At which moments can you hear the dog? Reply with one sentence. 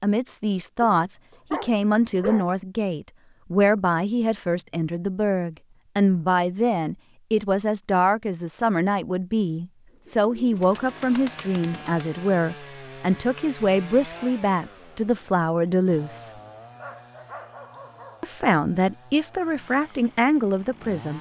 The dog can be heard from 0.8 to 2.5 s and from 16.8 to 18.2 s.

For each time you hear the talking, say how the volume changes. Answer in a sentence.
The talking can be heard from 0.0 to 16.4 s, at a steady volume; and briefly from 18.2 to 21.1 s.